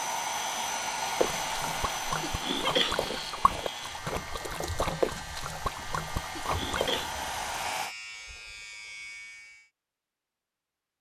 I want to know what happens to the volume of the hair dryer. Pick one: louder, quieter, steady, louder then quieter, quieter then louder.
quieter then louder.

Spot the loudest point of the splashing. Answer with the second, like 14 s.
5 s.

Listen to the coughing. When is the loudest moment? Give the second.
3 s.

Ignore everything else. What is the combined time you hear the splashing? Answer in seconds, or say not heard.
6 s.